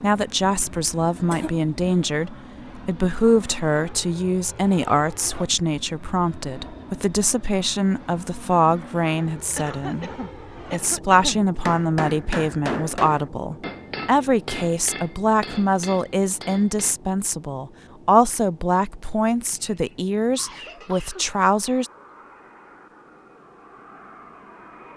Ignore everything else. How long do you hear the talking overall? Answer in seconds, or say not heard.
21 s.